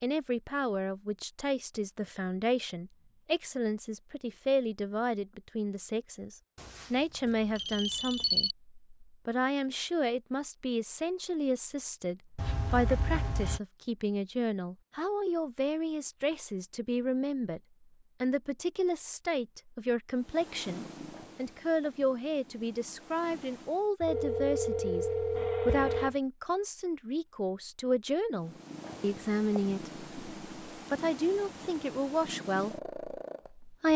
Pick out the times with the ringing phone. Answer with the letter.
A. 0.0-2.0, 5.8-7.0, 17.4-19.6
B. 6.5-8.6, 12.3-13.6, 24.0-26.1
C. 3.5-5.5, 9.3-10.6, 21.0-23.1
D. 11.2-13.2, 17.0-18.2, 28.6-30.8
B.